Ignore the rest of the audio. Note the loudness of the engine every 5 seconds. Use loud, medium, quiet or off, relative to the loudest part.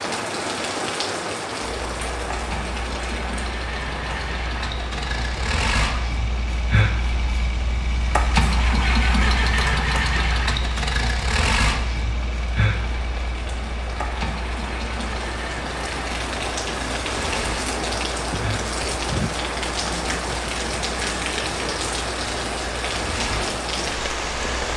medium, loud, loud, medium, medium.